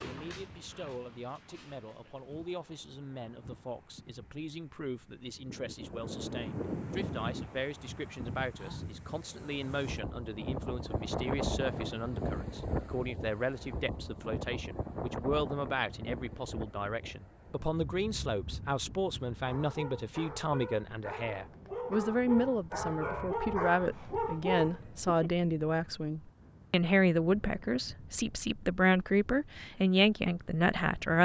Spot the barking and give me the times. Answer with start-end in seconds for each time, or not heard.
0.0-2.6, 19.4-25.3.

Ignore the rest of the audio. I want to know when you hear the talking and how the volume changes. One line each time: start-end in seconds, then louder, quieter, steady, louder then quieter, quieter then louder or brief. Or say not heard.
0.0-31.2 louder.